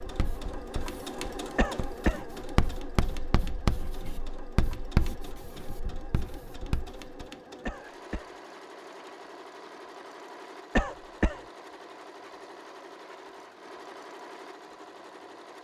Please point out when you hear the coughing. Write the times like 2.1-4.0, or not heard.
1.6-2.2, 7.7-8.3, 10.8-11.4.